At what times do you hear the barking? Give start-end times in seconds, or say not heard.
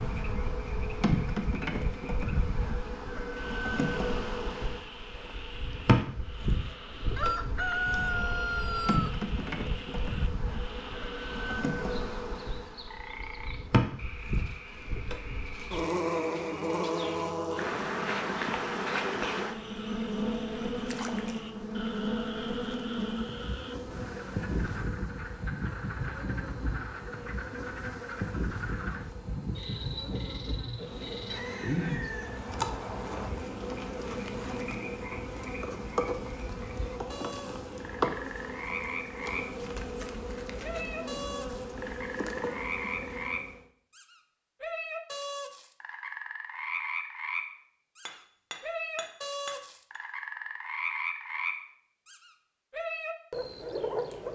not heard.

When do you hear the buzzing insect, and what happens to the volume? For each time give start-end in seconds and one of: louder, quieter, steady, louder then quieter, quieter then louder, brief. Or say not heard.
0.0-43.6 steady.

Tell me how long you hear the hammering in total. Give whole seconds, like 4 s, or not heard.
2 s.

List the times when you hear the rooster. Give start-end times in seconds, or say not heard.
7.2-9.2, 31.2-33.3.